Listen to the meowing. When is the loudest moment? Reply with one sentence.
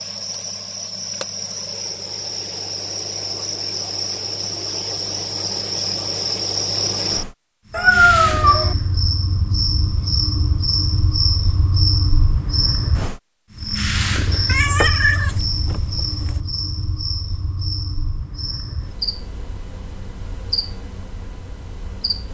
The volume of the meowing peaks at 8 seconds.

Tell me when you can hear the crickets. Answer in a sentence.
The crickets can be heard from 0.0 to 22.2 s.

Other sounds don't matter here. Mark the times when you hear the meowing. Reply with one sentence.
The meowing can be heard from 7.7 to 8.8 s and from 14.4 to 16.4 s.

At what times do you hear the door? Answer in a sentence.
The door can't be heard in this clip.